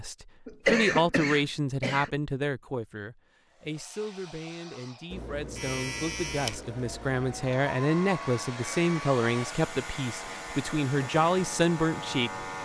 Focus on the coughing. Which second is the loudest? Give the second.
1 s.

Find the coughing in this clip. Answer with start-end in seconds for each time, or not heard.
0.5-2.1.